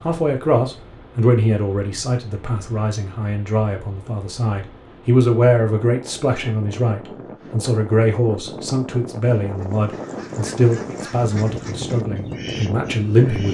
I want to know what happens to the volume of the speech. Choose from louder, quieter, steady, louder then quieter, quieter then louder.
steady.